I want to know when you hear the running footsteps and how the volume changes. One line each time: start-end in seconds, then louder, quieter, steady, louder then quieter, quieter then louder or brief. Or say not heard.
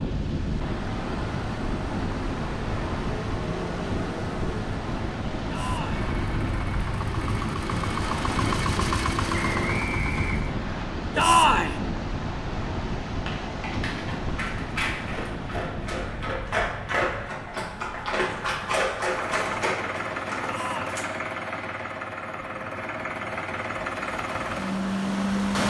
not heard.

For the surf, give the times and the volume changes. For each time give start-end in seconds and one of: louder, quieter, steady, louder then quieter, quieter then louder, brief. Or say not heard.
0.0-25.6 quieter.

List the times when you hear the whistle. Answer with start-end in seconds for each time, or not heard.
9.3-10.8.